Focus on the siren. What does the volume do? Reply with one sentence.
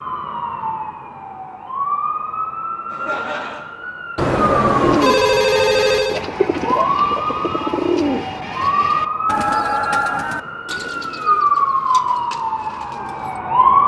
The volume of the siren goes up.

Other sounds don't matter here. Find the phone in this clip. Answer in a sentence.
You can hear the phone from 4.2 to 6.2 s.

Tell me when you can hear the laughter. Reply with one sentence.
The laughter can be heard from 2.9 to 3.6 s.